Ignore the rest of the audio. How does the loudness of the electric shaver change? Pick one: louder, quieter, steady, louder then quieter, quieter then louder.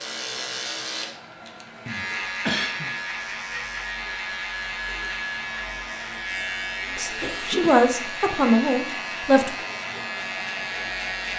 steady.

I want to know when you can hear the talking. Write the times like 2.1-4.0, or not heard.
7.0-9.5.